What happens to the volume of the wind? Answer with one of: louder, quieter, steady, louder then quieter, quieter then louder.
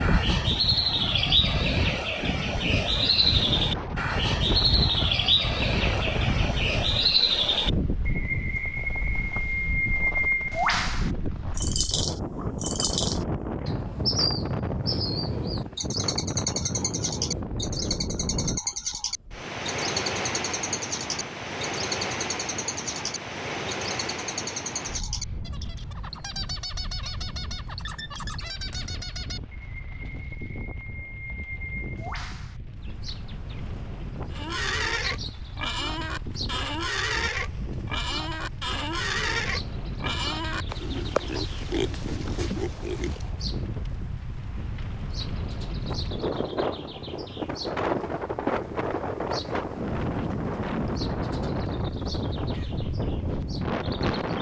quieter then louder.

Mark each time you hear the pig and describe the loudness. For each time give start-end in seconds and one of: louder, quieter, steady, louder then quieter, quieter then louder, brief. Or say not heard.
34.3-43.3 steady.